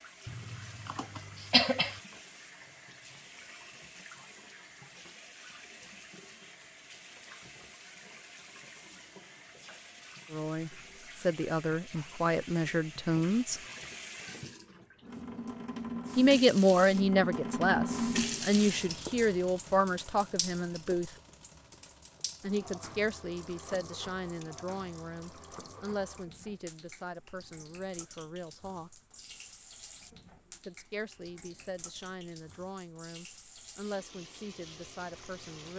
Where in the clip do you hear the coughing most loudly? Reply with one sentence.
The loudest moment of the coughing is at 2 seconds.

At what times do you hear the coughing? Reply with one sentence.
The coughing can be heard from 0.2 to 2.0 s.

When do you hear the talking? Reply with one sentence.
The talking can be heard from 10.3 to 13.6 s, from 16.1 to 21.1 s, from 22.4 to 29.0 s and from 30.6 to 35.7 s.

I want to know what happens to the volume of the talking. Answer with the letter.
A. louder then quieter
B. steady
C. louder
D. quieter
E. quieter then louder
D.